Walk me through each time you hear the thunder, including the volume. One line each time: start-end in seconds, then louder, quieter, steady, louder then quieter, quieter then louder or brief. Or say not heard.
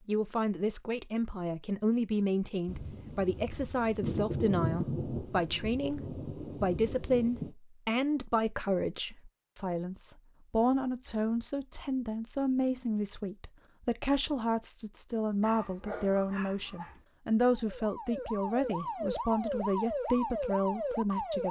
2.6-7.5 louder then quieter.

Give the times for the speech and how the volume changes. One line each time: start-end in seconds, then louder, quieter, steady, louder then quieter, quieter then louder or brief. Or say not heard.
0.1-21.4 steady.